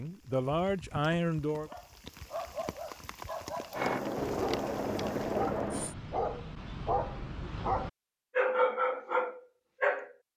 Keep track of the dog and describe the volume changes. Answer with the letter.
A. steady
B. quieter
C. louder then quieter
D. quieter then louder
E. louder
E.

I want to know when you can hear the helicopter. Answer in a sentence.
The helicopter can be heard from 3.7 to 6.0 s.